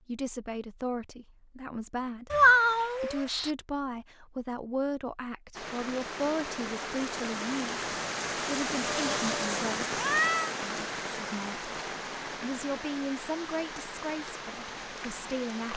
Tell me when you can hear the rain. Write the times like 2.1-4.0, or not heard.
5.5-15.7.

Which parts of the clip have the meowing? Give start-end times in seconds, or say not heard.
2.3-3.5, 8.8-10.6.